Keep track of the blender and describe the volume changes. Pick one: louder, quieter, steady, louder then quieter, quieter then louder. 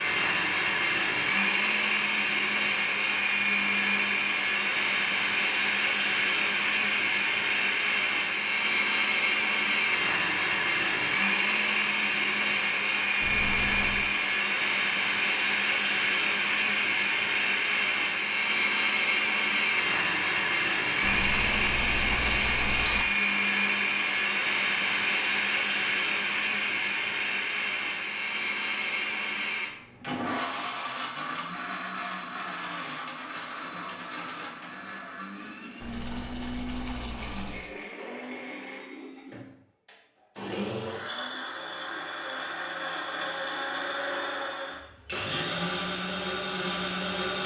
quieter.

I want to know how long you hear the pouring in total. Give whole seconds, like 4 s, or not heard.
5 s.